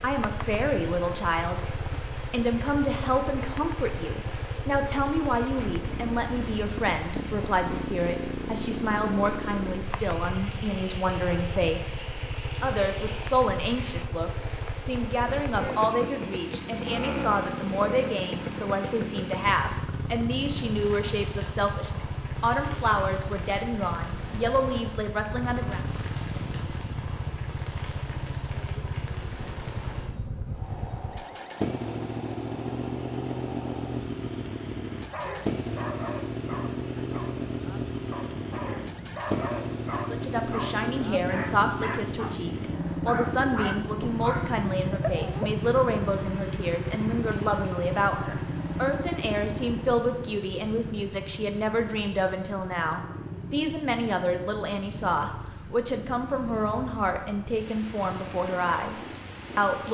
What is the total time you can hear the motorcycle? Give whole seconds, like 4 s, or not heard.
60 s.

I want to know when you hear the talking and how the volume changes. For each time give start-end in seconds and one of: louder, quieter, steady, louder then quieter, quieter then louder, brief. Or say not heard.
0.0-25.8 steady
40.0-59.9 steady.